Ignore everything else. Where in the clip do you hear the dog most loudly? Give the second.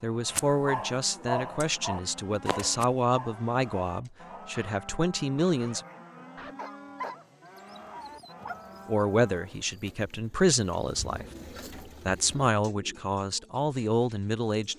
1 s.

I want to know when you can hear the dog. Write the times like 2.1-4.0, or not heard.
0.2-8.6.